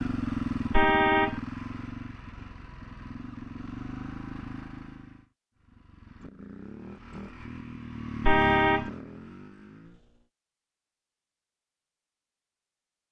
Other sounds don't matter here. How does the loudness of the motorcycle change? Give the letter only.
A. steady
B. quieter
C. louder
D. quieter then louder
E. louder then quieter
D.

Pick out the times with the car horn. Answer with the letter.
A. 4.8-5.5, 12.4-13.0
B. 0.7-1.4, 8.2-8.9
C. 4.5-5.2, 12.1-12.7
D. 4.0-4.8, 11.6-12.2
B.